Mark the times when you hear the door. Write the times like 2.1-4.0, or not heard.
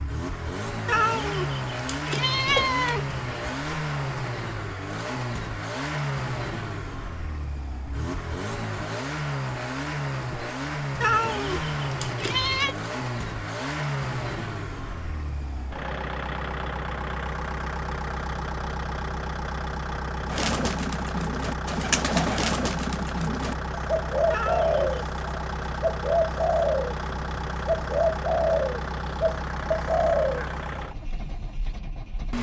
not heard.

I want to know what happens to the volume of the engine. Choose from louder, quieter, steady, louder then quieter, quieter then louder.
steady.